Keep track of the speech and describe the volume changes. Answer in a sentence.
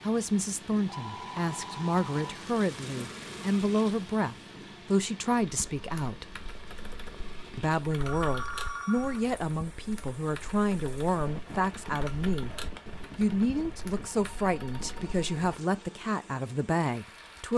The loudness of the speech stays about the same.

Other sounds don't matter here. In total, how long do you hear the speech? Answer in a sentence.
You can hear the speech for 16 seconds altogether.